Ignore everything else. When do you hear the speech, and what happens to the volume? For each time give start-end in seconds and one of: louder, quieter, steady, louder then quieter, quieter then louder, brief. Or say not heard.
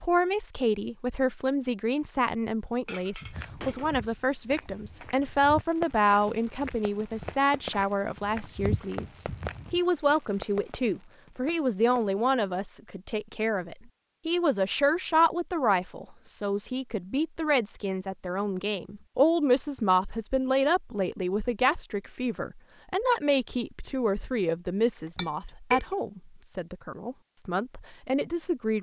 0.0-28.7 steady.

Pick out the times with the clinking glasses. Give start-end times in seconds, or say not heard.
2.9-4.0, 25.1-25.9.